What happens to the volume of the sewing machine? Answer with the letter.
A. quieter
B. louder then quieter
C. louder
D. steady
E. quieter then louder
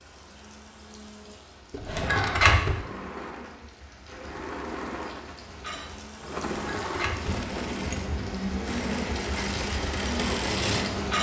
C.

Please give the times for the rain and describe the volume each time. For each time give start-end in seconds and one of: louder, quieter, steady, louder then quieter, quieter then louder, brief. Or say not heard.
0.0-11.1 louder.